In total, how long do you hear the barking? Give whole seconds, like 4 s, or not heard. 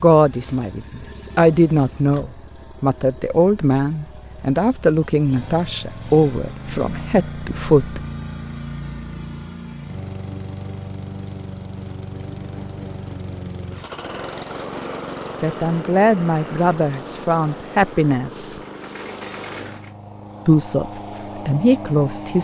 not heard.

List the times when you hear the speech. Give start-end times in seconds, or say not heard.
0.0-8.0, 15.4-18.6, 20.4-22.3.